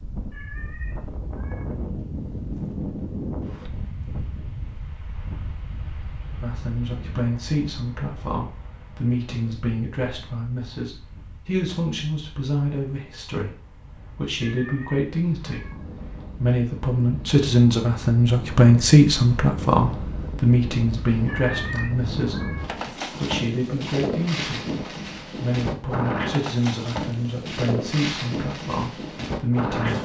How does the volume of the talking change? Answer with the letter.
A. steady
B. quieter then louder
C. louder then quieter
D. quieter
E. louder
C.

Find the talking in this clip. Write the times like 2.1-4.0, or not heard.
6.4-29.9.